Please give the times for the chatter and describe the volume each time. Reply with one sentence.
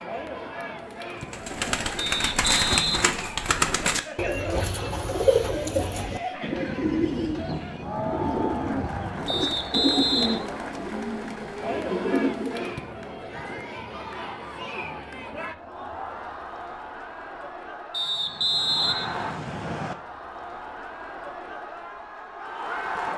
You can hear the chatter from 0.0 to 23.1 s, at a steady volume.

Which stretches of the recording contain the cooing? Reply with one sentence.
You can hear the cooing from 1.3 to 12.8 s.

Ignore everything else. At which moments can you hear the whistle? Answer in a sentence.
The whistle can be heard from 1.9 to 3.0 s, from 9.2 to 10.4 s and from 17.9 to 19.9 s.